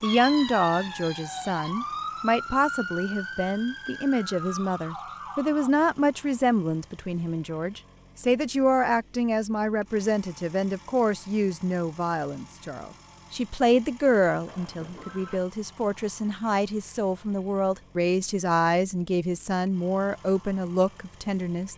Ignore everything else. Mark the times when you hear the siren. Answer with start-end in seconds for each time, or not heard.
0.0-5.7.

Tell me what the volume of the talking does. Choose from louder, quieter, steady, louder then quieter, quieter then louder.
steady.